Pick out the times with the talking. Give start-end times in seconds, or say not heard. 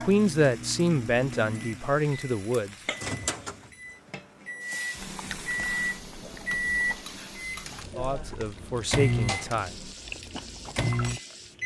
0.0-2.8, 8.0-9.8.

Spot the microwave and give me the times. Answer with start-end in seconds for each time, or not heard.
0.0-11.6.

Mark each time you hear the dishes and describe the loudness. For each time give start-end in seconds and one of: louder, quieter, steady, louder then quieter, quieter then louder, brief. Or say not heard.
not heard.